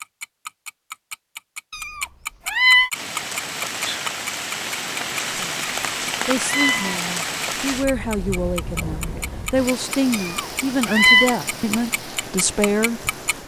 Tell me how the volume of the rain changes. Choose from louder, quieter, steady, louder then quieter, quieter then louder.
quieter.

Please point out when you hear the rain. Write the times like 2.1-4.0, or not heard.
2.9-13.4.